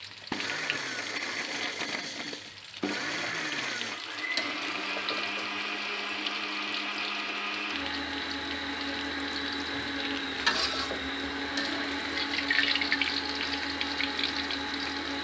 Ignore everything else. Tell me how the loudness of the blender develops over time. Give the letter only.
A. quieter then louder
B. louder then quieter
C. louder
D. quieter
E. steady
E.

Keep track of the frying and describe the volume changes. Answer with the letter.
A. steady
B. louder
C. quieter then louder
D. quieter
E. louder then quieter
B.